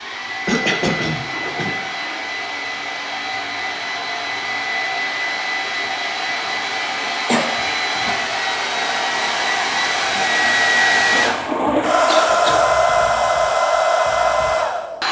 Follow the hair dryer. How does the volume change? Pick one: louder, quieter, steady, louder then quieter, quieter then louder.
louder.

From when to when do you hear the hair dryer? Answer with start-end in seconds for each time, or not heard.
0.0-15.0.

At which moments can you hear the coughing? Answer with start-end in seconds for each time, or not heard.
0.5-1.7, 7.2-8.2, 12.1-12.7.